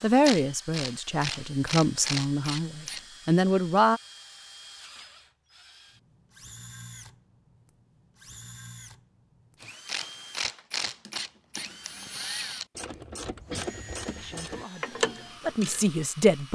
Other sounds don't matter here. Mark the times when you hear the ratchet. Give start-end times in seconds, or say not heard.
0.1-3.0, 9.8-15.9.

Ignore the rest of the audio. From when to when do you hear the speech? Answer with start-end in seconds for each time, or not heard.
0.0-4.0, 14.2-16.5.